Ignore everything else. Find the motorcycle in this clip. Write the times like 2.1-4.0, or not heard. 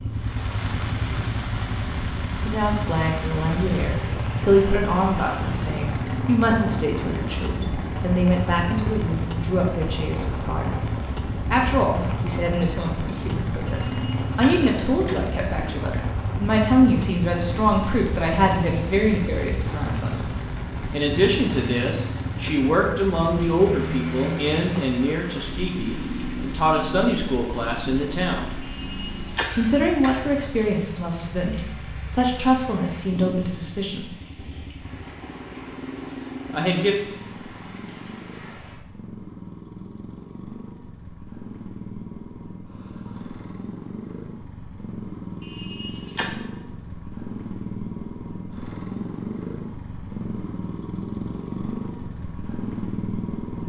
0.0-53.6.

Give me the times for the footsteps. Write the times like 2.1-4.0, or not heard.
not heard.